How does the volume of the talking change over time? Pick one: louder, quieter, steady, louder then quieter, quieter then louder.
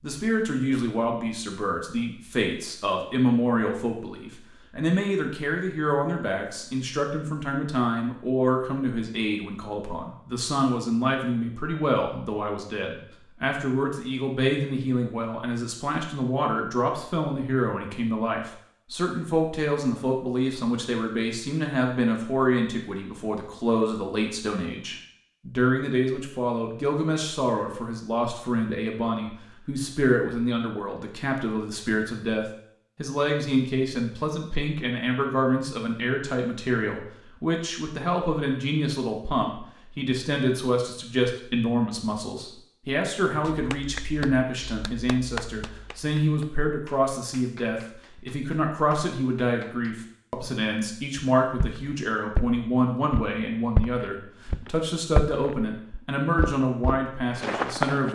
steady.